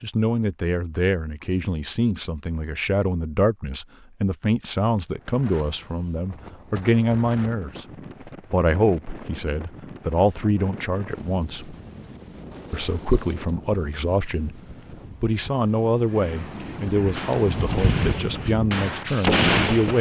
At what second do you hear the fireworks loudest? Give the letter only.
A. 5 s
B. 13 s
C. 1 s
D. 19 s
D.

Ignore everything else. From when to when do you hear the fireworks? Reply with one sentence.
The fireworks can be heard from 17.1 to 19.9 s.